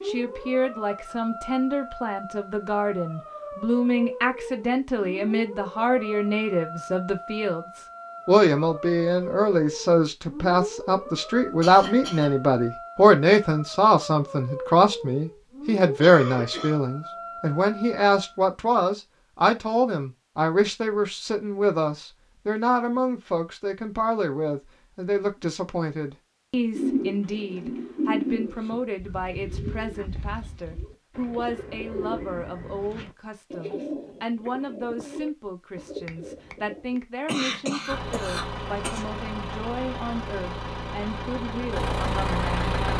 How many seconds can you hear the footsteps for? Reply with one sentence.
You can't hear the footsteps here.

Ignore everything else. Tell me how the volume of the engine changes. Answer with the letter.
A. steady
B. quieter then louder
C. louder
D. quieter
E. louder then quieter
C.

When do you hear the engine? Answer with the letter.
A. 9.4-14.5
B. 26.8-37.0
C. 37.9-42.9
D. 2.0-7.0
C.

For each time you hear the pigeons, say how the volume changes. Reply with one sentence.
You can hear the pigeons from 26.8 to 37.0 s, getting quieter.